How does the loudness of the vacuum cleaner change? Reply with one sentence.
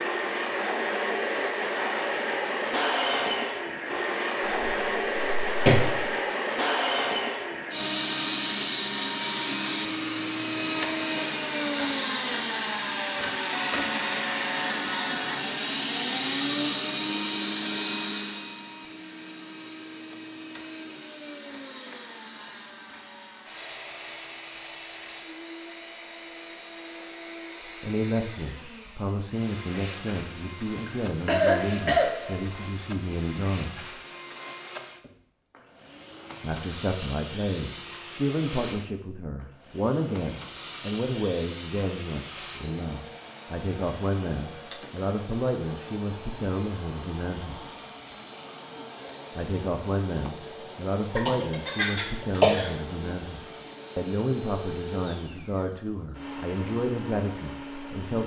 The loudness of the vacuum cleaner goes down.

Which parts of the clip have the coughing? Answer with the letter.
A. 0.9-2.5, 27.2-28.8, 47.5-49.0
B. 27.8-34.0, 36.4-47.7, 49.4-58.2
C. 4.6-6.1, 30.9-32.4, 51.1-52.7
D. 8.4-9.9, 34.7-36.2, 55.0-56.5
C.